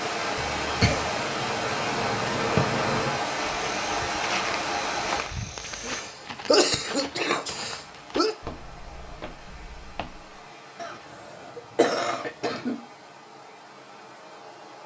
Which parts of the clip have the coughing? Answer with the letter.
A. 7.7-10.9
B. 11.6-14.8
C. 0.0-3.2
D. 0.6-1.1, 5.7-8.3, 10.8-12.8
D.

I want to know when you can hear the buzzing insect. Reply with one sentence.
The buzzing insect can be heard from 0.0 to 3.2 s.